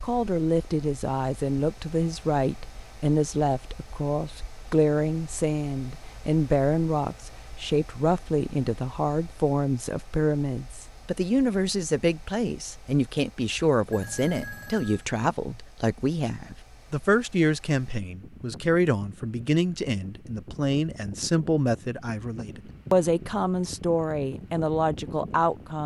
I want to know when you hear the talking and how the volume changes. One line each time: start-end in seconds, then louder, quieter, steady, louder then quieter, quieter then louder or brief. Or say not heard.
0.0-25.8 steady.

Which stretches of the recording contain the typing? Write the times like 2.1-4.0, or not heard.
not heard.